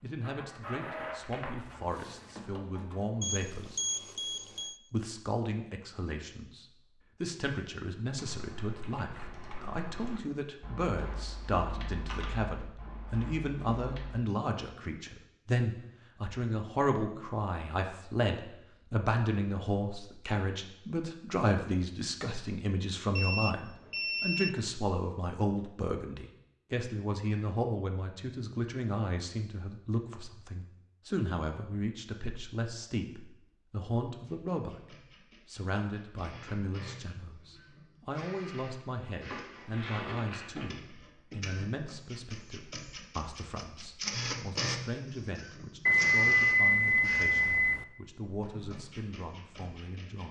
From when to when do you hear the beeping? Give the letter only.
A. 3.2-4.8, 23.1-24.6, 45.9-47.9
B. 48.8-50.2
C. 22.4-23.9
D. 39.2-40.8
A.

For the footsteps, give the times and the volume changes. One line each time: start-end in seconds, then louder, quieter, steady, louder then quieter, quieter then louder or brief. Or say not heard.
not heard.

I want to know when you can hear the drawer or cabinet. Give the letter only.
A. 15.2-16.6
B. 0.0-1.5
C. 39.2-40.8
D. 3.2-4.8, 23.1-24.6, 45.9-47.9
C.